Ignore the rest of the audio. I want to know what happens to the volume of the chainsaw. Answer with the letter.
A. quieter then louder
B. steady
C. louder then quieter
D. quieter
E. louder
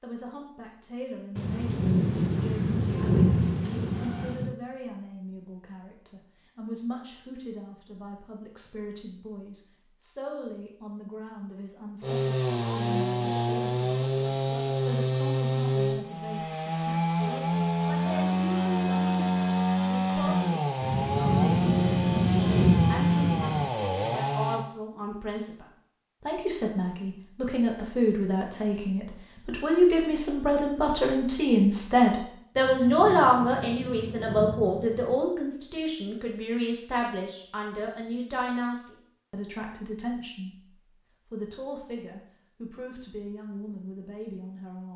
B.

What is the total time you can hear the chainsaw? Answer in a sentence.
You can hear the chainsaw for 13 seconds altogether.